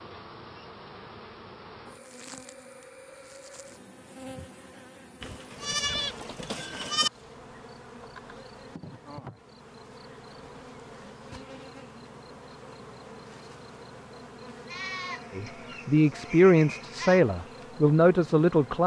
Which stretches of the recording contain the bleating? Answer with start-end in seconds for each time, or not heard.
5.2-7.1, 14.7-17.2.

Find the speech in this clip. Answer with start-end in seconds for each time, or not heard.
15.3-18.8.